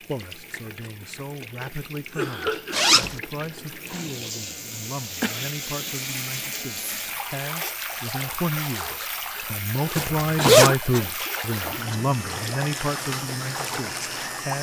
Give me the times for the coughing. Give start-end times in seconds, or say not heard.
1.9-3.0, 5.2-6.0, 10.3-12.1.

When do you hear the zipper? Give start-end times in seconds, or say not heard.
2.7-3.1, 6.8-7.2, 9.9-10.7.